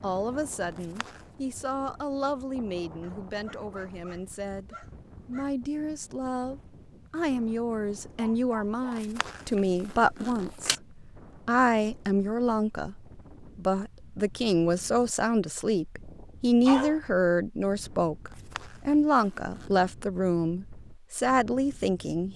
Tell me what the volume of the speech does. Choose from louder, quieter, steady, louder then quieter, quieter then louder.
louder.